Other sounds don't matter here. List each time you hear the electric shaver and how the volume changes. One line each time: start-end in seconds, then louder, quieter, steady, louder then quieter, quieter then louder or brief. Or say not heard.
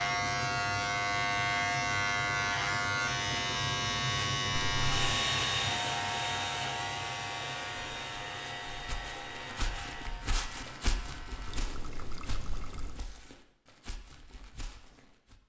0.0-11.7 quieter.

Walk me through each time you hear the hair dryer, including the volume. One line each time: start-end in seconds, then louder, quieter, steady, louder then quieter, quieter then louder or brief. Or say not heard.
4.8-10.2 quieter.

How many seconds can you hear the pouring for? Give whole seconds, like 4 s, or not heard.
2 s.